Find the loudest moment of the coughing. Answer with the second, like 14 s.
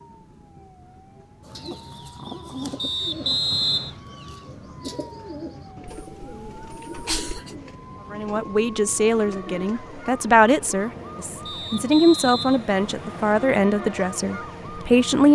7 s.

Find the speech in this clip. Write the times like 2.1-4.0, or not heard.
8.1-15.3.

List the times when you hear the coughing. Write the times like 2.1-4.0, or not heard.
5.8-7.5.